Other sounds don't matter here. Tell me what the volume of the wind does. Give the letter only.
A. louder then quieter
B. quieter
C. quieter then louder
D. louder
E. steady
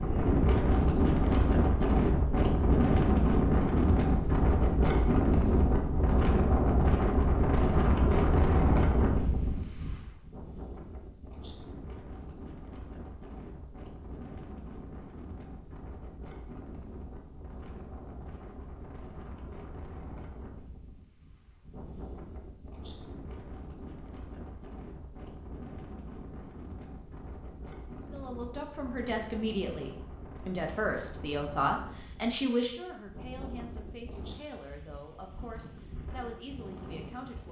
B.